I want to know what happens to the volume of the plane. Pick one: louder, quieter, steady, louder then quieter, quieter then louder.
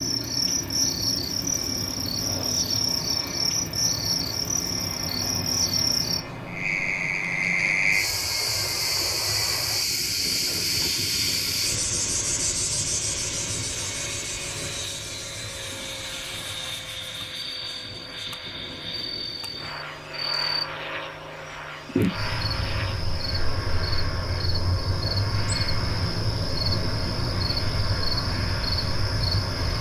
steady.